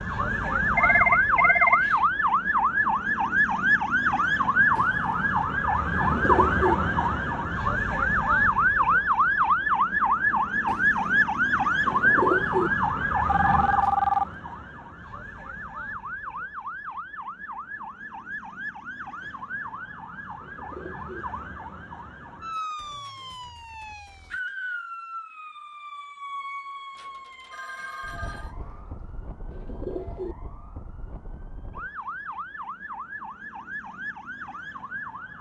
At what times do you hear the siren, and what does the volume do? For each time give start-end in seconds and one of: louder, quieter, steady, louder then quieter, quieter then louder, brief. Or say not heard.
0.0-35.3 quieter.